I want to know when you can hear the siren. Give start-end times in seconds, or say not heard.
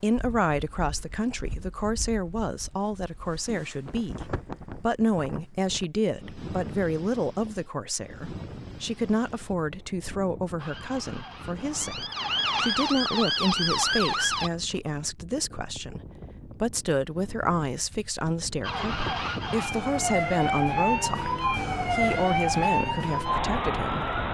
10.6-14.5, 18.6-24.2.